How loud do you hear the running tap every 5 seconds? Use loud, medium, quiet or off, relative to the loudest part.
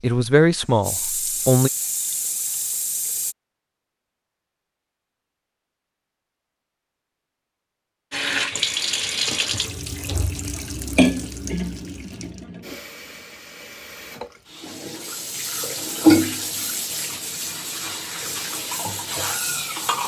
medium, loud, medium, loud.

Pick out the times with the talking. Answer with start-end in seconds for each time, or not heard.
0.0-1.7.